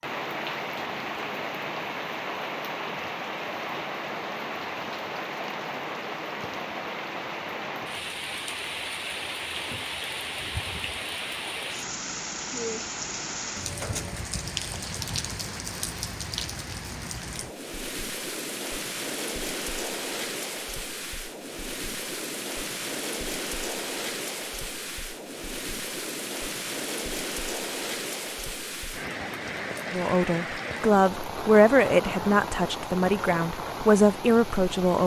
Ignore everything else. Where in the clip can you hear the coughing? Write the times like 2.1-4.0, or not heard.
not heard.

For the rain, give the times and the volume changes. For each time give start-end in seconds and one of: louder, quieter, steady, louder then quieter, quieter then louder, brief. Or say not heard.
0.0-35.0 steady.